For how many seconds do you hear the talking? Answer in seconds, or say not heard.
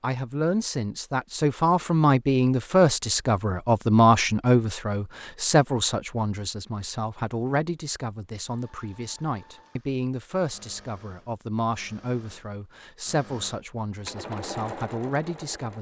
16 s.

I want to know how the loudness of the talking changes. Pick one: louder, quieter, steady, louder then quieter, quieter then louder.
quieter.